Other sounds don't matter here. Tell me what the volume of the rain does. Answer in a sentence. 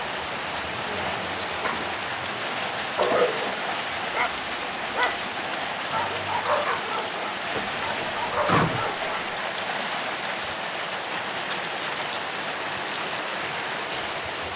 The volume of the rain stays about the same.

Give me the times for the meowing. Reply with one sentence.
The meowing can't be heard in this clip.